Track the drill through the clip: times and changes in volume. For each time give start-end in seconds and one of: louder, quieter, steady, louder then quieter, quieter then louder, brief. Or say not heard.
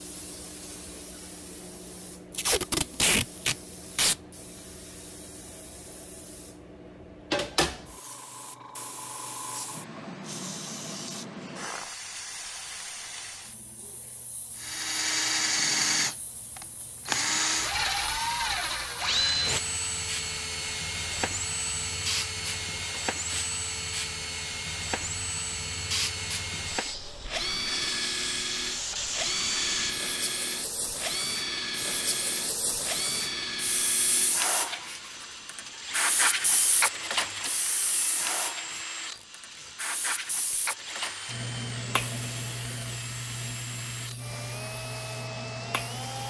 14.6-46.2 quieter.